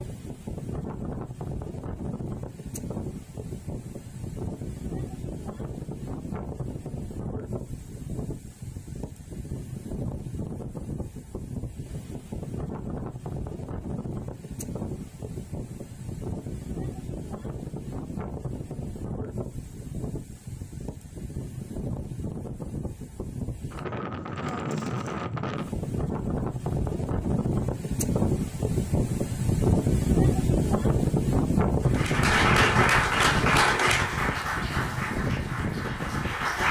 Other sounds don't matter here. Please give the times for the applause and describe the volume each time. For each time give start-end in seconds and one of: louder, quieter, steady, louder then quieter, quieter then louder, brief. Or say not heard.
31.9-36.6 quieter.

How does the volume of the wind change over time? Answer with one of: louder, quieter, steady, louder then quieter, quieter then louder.
louder.